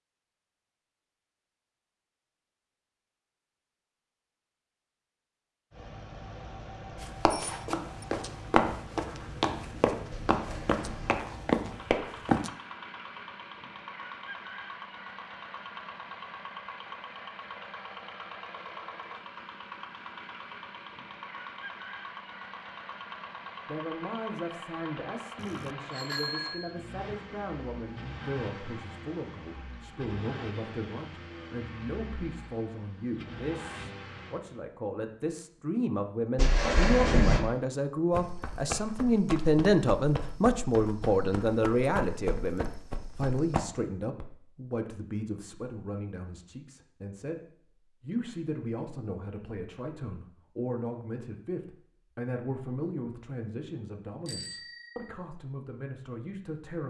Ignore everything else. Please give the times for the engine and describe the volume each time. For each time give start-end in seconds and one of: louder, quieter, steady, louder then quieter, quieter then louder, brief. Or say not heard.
5.7-34.6 steady.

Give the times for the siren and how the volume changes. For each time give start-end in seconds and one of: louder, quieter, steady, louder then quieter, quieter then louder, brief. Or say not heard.
not heard.